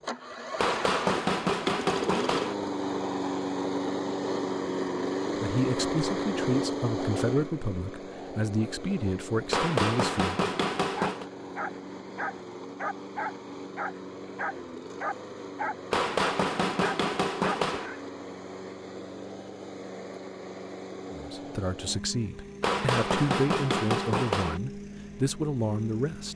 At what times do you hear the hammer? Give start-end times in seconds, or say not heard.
0.6-2.5, 9.5-11.2, 15.9-17.9, 22.6-24.6.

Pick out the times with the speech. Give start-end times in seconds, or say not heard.
5.4-10.4, 21.1-26.3.